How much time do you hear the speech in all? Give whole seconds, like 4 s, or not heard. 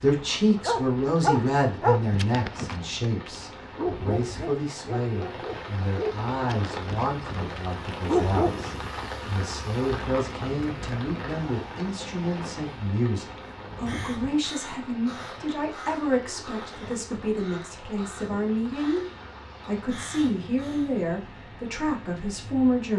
22 s.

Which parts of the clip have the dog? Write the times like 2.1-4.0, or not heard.
0.7-8.6.